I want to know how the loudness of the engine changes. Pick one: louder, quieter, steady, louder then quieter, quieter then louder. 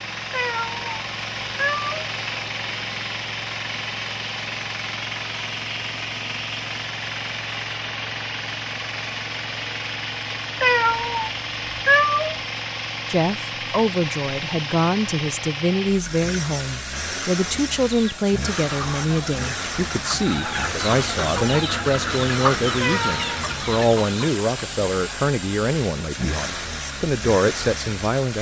steady.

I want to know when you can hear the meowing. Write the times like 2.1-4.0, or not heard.
0.3-1.9, 10.6-12.3, 22.8-23.4.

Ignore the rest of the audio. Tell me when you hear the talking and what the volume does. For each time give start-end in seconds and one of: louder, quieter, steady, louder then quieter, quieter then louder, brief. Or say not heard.
13.1-28.3 steady.